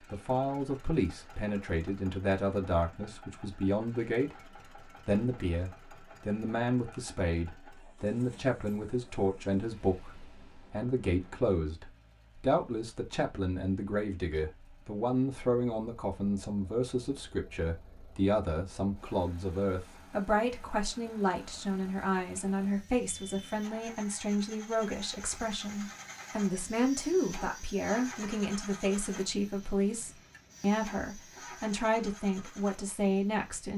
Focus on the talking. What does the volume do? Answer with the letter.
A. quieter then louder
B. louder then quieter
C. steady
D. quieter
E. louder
C.